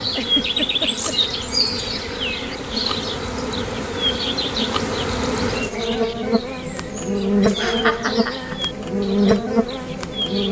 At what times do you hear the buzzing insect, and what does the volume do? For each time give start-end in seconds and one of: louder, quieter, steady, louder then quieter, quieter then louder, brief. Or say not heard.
0.0-10.4 louder.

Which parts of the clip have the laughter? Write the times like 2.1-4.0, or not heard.
0.1-1.1, 7.6-8.6.